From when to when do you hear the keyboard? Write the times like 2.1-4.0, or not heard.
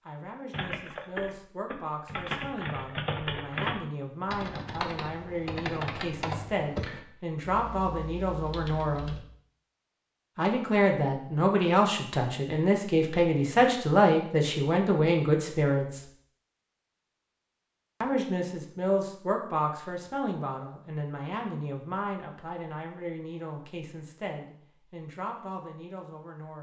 0.5-9.2.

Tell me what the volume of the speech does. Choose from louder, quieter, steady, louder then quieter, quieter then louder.
louder then quieter.